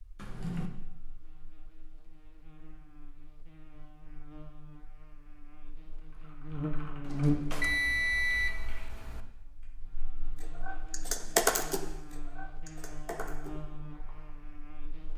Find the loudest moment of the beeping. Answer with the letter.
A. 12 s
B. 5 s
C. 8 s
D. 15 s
C.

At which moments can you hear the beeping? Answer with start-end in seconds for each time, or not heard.
7.6-9.2.